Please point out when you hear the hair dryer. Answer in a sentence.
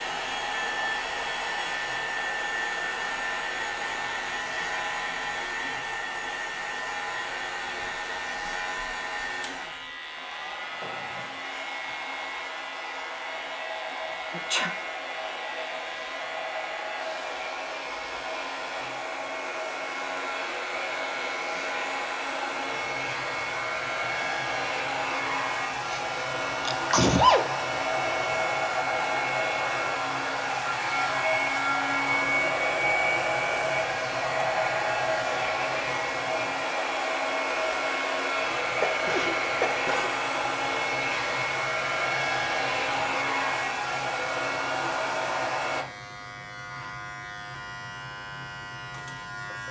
The hair dryer can be heard from 0.0 to 45.9 s.